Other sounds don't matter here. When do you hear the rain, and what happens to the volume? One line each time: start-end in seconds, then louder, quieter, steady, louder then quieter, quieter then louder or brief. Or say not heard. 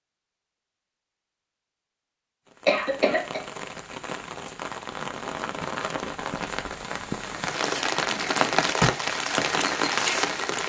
2.5-10.6 louder.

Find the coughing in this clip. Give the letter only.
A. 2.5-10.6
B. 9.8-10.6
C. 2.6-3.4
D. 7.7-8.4
C.